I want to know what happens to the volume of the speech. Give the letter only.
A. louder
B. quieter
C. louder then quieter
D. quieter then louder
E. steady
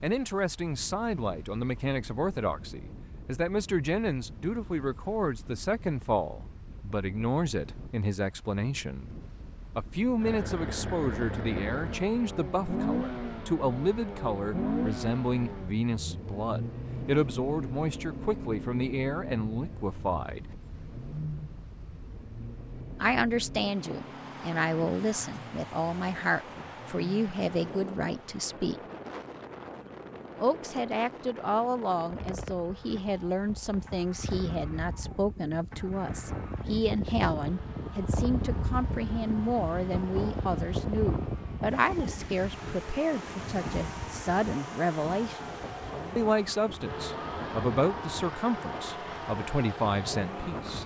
E.